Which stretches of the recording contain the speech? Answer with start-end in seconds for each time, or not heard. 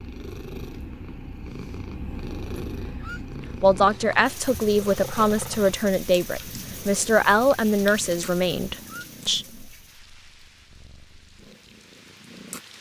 3.5-9.4.